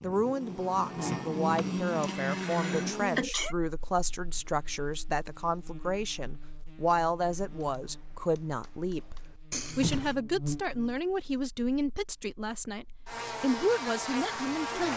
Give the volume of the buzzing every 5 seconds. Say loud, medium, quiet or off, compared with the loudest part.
loud, quiet, loud.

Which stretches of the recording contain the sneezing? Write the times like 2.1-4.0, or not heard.
1.6-3.5, 9.5-10.2.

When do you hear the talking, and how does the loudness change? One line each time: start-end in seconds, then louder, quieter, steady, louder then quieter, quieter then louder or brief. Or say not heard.
0.0-14.9 steady.